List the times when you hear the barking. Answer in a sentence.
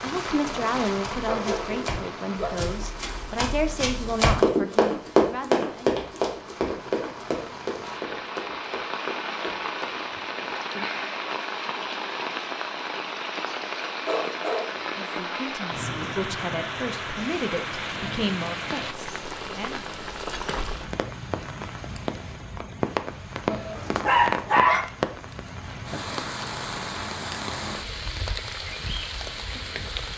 The barking can be heard from 1.2 to 2.7 s, from 14.1 to 14.7 s and from 23.4 to 24.8 s.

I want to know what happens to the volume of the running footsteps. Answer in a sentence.
The volume of the running footsteps goes up, then down.